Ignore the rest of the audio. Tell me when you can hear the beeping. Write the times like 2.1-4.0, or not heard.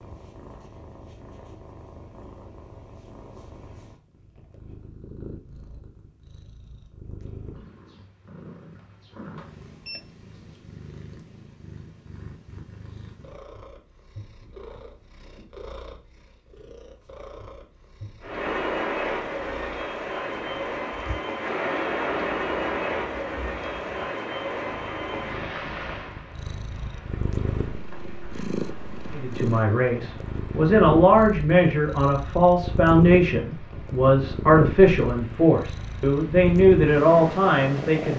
9.3-10.0.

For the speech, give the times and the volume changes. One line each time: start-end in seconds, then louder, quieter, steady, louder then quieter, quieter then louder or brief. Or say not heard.
29.1-38.1 steady.